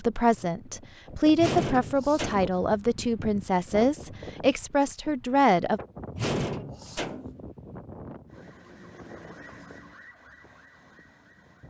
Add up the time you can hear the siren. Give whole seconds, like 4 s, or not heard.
3 s.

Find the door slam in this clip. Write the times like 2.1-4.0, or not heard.
1.4-2.5, 6.2-7.4.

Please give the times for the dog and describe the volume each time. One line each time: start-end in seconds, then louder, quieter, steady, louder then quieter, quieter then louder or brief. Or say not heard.
not heard.